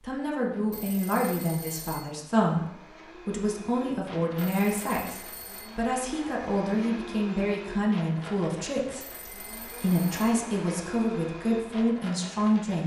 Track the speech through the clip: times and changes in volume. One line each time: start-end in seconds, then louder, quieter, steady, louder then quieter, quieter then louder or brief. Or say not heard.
0.0-12.8 steady.